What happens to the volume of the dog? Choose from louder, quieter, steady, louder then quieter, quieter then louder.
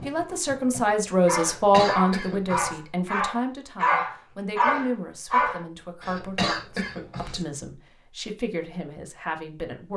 louder.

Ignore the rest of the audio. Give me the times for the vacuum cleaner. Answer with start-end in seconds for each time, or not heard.
not heard.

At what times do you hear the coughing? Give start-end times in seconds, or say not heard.
1.4-2.8, 6.0-7.5.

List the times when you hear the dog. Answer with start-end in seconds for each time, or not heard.
0.0-5.6.